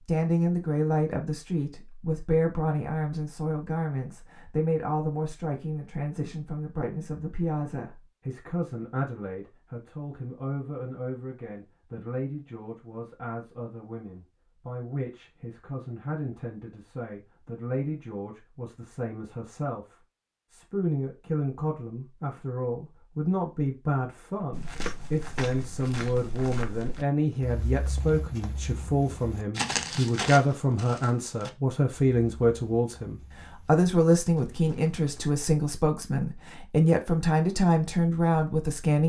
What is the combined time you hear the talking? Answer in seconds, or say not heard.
39 s.